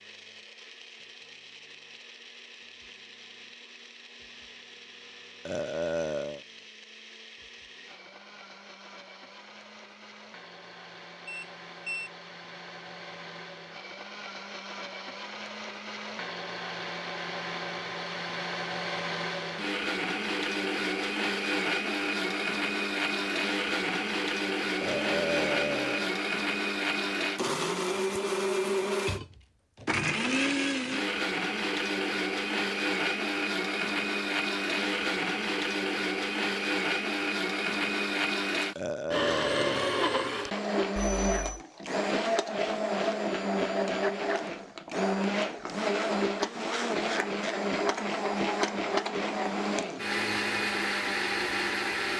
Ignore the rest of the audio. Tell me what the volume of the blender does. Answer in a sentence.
The loudness of the blender goes up.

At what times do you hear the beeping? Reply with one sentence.
The beeping can be heard from 11.2 to 12.1 s and from 41.0 to 41.6 s.